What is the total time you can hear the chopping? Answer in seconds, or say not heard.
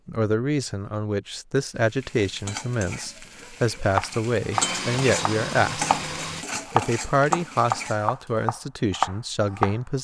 6 s.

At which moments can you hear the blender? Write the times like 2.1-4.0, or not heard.
4.5-6.5.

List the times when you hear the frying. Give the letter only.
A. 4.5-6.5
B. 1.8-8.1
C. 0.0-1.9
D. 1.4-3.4
B.